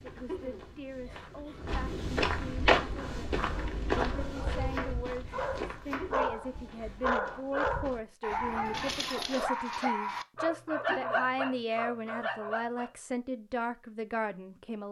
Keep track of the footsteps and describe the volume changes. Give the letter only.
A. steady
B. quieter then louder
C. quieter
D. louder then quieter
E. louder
D.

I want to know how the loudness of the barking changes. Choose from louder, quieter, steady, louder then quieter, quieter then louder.
louder.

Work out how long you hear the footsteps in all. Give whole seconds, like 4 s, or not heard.
9 s.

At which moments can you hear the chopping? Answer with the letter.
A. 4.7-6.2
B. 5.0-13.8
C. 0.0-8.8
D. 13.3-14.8
A.